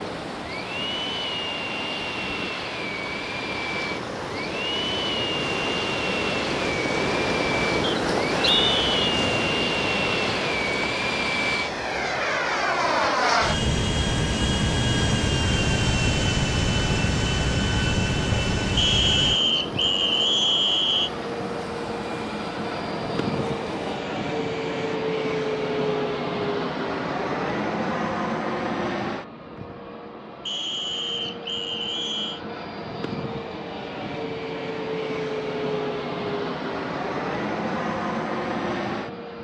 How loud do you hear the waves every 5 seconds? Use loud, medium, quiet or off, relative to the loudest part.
medium, loud, medium, medium, medium, off, off, off.